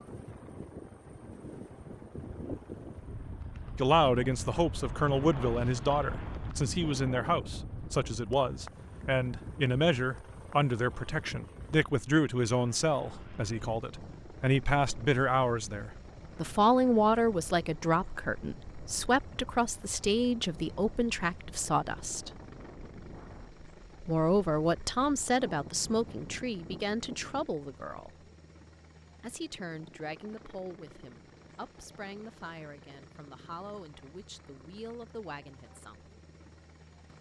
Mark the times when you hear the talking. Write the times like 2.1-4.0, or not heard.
3.8-22.3, 24.1-28.1, 29.2-36.1.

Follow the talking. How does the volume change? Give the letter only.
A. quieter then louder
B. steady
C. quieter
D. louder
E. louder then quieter
C.